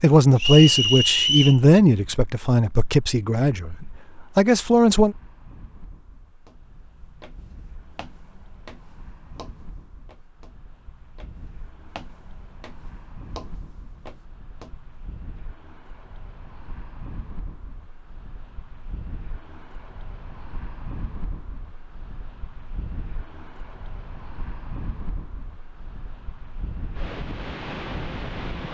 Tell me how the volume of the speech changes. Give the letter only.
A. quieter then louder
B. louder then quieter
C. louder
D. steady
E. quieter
A.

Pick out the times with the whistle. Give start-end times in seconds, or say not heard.
0.3-1.6.